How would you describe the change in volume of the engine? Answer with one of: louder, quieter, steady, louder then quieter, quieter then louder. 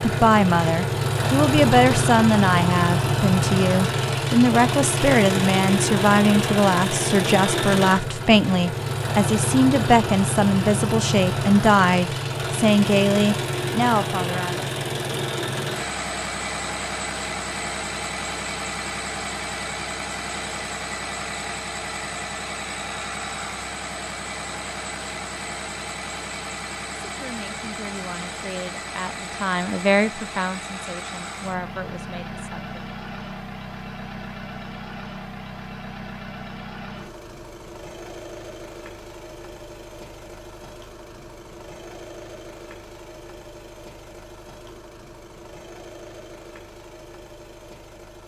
quieter.